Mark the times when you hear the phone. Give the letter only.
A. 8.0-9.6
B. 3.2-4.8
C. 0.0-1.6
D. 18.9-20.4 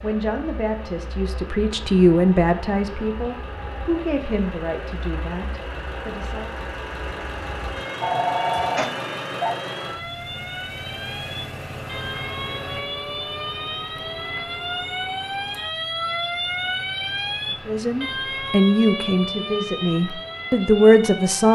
A.